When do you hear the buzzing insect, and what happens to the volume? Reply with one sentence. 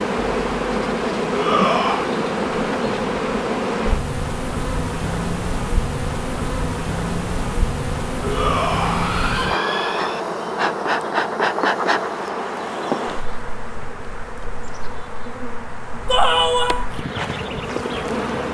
The buzzing insect can be heard from 0.0 to 18.4 s, getting quieter.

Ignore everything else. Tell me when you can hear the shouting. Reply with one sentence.
You can hear the shouting from 1.3 to 2.1 s, from 8.2 to 10.2 s and from 16.1 to 16.9 s.